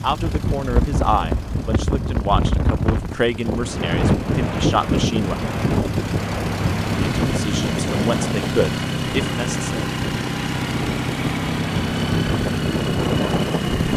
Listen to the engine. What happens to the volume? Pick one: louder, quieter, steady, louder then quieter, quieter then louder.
louder.